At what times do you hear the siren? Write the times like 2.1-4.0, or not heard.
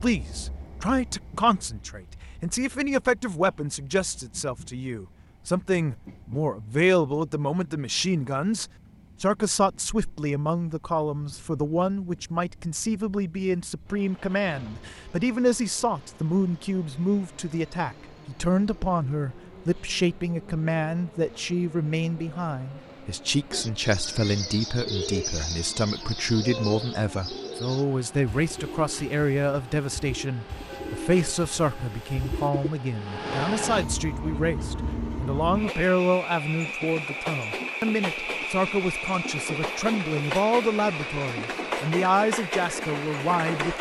not heard.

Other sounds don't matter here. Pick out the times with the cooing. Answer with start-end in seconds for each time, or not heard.
23.5-32.7.